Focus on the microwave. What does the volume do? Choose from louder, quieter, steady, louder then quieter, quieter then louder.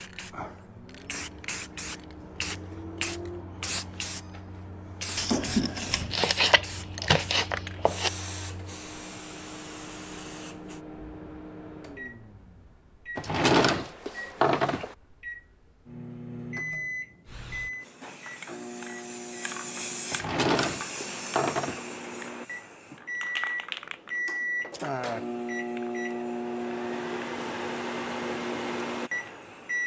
louder.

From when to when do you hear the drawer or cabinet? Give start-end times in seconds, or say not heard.
5.2-6.2, 13.2-14.9, 20.1-21.8.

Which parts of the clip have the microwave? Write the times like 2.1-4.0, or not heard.
0.0-29.8.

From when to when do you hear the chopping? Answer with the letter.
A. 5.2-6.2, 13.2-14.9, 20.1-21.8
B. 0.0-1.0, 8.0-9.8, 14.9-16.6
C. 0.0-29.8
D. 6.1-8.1
D.